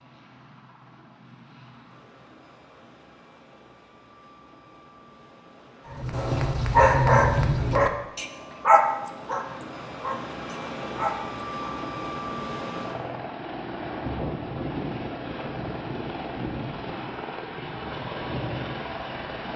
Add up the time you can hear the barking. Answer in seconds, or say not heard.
6 s.